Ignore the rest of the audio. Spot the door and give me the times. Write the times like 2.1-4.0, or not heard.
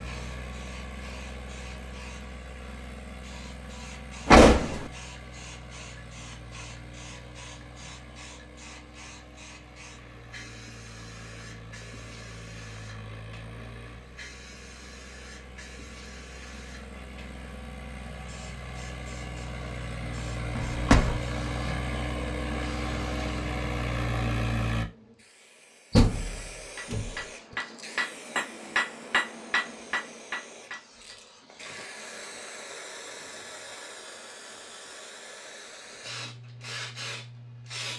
4.2-4.8, 20.6-21.2, 25.9-27.1.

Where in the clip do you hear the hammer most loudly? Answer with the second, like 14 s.
29 s.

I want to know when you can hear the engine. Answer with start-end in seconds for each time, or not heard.
0.0-24.9.